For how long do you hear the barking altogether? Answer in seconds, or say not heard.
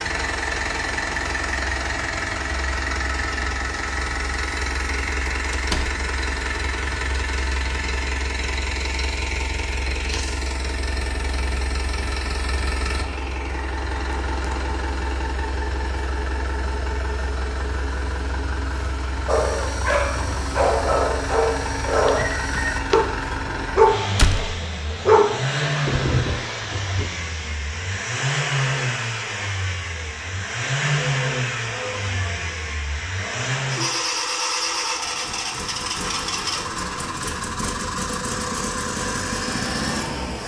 8 s.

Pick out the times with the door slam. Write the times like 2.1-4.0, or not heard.
5.5-6.0, 24.1-24.6.